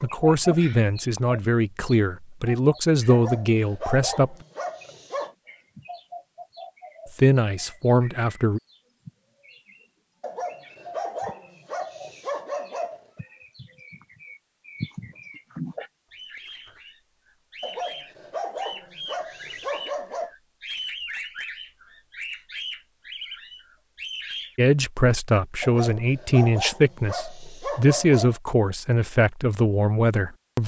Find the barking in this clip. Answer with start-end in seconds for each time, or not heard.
3.1-5.3, 10.2-13.2, 17.6-20.3, 25.6-28.4.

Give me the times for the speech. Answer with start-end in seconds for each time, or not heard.
0.0-4.3, 7.2-8.6, 24.6-30.6.